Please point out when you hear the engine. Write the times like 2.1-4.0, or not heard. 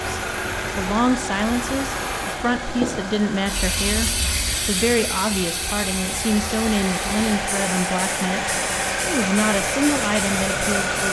0.0-11.0.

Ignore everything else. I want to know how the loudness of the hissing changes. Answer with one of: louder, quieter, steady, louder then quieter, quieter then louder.
quieter.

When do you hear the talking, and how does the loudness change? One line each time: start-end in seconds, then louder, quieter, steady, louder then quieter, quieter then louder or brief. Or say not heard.
0.1-11.0 steady.